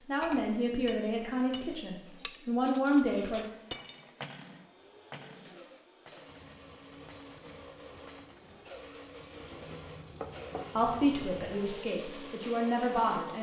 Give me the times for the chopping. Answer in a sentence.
The chopping can't be heard in this clip.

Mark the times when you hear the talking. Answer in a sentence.
The talking can be heard from 0.1 to 3.5 s and from 10.8 to 13.3 s.